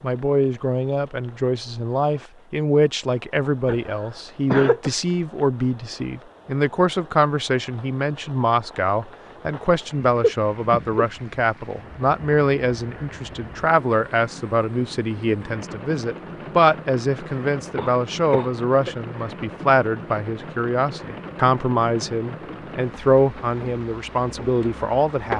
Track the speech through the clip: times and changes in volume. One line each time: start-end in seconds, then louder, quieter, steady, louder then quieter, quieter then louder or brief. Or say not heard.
0.0-25.3 steady.